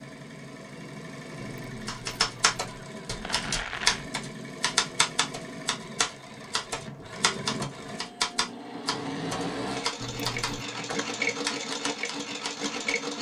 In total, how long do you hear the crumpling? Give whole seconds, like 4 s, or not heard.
2 s.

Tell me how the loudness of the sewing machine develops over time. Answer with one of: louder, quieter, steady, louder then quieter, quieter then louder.
louder.